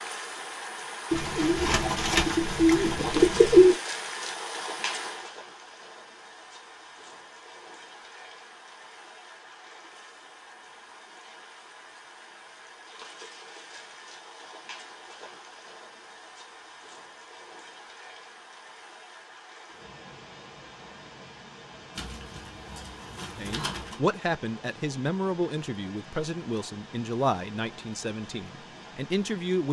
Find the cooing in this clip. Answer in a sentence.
You can hear the cooing from 1.1 to 3.8 s and from 21.9 to 24.0 s.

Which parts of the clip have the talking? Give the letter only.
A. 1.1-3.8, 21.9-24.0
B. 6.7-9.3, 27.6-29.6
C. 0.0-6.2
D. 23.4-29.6
D.